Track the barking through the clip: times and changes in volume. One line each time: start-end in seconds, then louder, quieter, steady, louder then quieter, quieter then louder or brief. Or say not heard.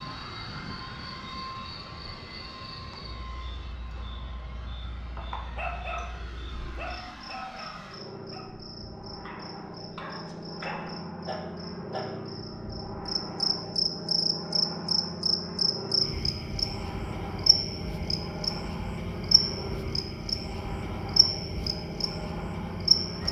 5.2-12.1 quieter then louder.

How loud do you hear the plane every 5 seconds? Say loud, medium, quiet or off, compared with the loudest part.
medium, medium, loud, loud, loud.